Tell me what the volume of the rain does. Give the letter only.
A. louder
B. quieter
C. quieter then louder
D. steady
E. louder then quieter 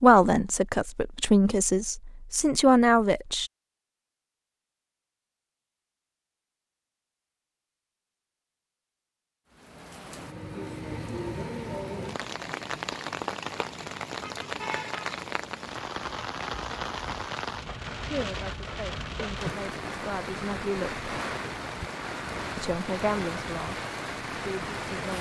D.